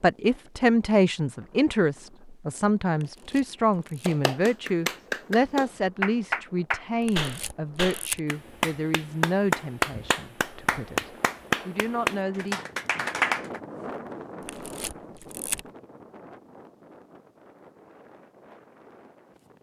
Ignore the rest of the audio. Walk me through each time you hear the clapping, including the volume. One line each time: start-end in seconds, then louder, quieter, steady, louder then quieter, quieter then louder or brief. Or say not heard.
4.0-13.6 steady.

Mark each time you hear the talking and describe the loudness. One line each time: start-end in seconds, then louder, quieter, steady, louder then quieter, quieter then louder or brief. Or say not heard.
0.0-12.7 quieter.